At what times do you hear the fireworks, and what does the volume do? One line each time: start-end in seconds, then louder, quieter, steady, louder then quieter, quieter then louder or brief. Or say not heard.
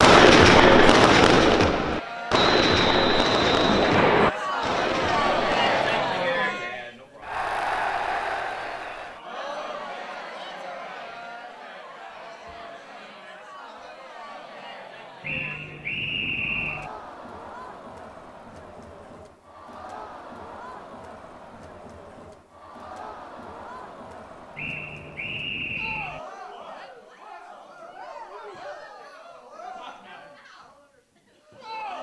0.0-6.1 quieter.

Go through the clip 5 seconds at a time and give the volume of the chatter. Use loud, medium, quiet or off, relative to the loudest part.
loud, loud, quiet, quiet, quiet, quiet, quiet.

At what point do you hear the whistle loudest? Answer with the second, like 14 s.
4 s.